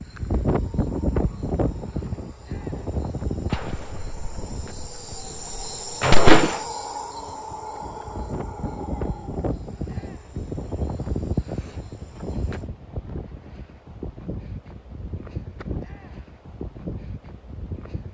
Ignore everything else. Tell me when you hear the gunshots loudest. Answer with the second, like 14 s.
6 s.